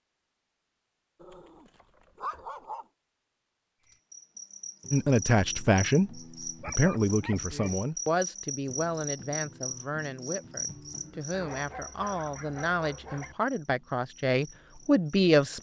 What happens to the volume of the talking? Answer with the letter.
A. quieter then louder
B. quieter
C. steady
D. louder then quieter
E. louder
A.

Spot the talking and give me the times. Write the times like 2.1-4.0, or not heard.
4.9-15.5.